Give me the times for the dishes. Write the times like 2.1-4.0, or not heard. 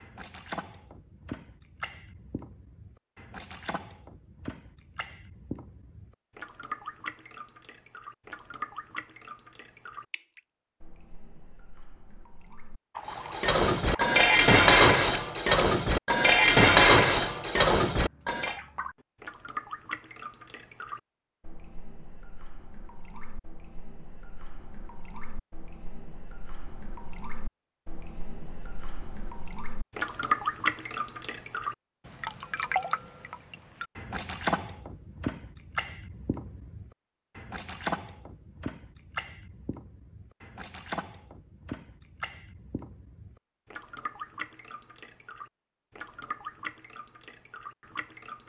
13.1-18.6.